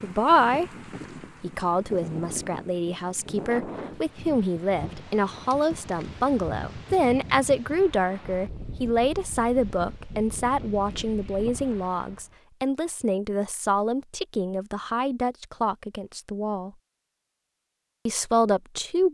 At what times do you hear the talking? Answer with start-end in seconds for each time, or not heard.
0.0-0.7, 1.4-16.7, 18.1-19.0.